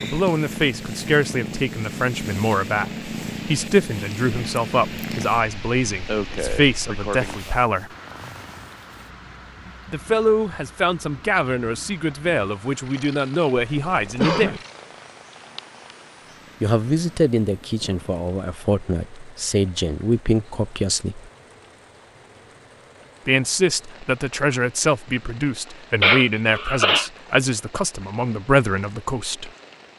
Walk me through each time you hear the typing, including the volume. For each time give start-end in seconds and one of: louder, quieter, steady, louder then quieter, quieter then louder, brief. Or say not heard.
not heard.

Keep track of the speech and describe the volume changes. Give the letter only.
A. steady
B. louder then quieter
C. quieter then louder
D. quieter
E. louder
A.